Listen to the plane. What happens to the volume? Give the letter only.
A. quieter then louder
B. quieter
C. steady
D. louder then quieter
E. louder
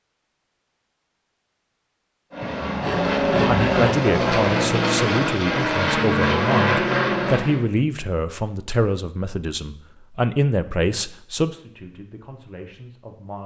C.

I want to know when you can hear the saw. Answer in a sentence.
You can hear the saw from 2.4 to 4.0 s.